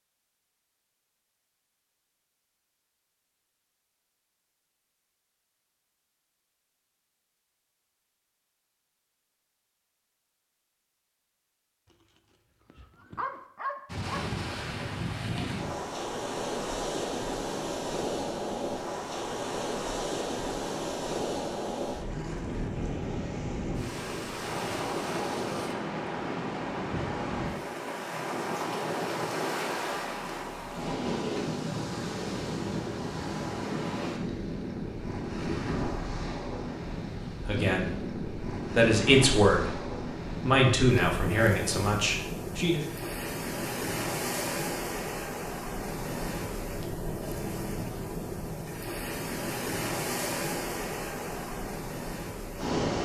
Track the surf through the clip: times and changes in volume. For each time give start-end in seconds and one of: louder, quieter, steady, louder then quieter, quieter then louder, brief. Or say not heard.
13.8-53.0 steady.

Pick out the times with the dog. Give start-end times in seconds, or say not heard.
12.7-14.2.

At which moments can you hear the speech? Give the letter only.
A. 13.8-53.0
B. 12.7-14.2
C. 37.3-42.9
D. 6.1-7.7
C.